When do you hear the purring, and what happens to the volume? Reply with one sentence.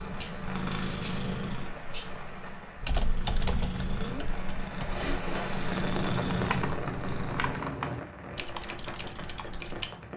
You can hear the purring from 0.0 to 7.5 s, getting quieter then louder.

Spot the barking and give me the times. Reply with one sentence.
The barking can't be heard in this clip.